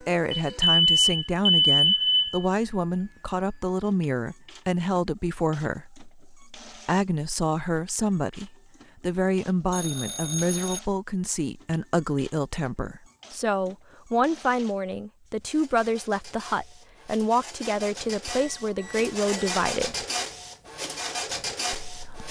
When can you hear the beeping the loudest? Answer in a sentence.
The volume of the beeping peaks at 2 seconds.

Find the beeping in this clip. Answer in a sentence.
You can hear the beeping from 0.3 to 2.5 s, from 9.7 to 10.8 s and from 18.2 to 19.6 s.